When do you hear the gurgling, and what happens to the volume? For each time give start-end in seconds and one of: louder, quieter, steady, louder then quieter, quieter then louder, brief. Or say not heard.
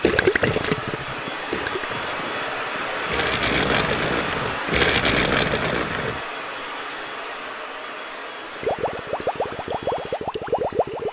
0.0-6.2 quieter then louder
8.6-11.0 brief.